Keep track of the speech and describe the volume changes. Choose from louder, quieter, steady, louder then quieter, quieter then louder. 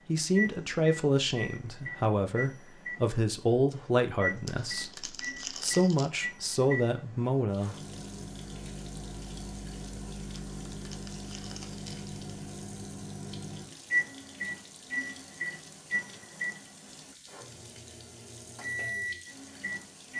steady.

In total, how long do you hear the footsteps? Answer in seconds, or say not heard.
not heard.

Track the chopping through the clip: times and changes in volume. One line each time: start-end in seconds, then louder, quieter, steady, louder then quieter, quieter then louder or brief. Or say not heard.
not heard.